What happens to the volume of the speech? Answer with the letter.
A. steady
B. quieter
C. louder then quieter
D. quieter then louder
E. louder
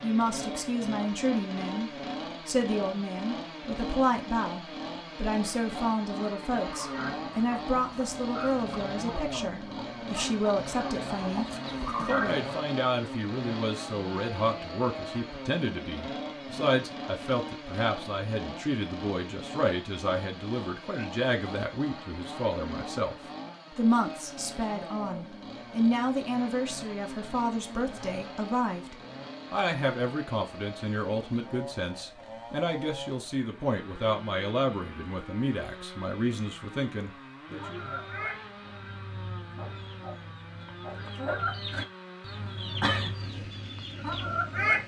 A.